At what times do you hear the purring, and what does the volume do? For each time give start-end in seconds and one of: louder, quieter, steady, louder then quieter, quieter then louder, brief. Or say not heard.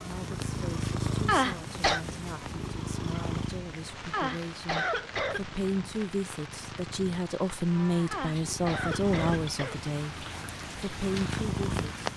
0.0-12.1 quieter then louder.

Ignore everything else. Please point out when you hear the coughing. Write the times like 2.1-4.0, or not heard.
1.2-2.0, 4.1-5.4, 8.1-9.8.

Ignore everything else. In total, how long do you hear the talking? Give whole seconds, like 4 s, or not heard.
12 s.